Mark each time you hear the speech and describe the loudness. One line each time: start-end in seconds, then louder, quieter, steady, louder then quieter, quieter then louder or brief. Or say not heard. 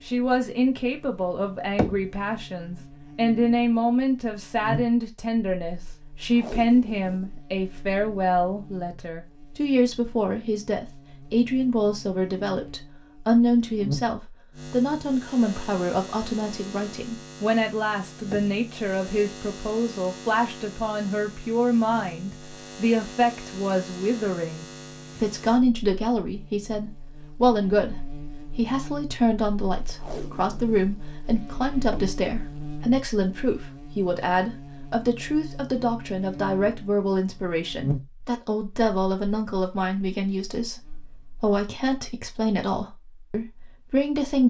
0.0-44.4 steady.